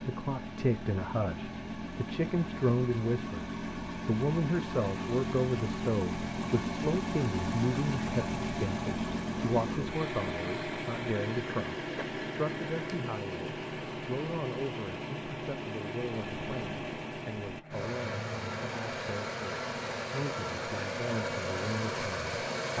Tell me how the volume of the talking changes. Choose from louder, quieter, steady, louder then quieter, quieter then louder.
quieter.